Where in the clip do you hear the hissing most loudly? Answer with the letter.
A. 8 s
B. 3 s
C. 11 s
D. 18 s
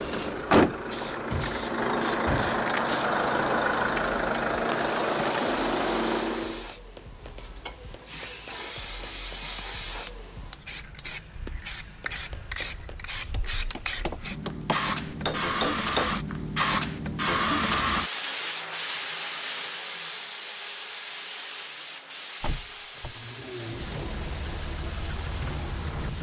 D.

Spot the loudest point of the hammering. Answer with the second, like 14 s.
16 s.